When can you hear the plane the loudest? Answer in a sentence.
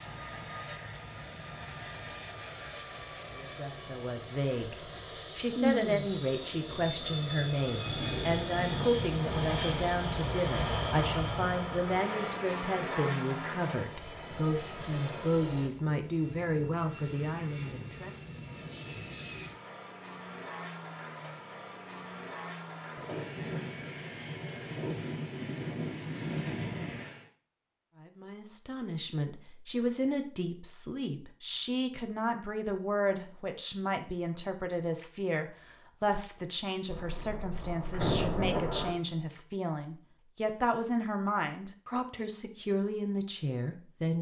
The volume of the plane peaks at 11 seconds.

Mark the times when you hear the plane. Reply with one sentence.
The plane can be heard from 0.0 to 27.3 s.